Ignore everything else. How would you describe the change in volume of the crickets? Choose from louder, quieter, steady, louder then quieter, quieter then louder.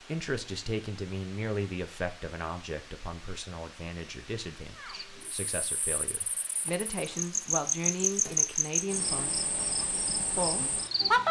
louder then quieter.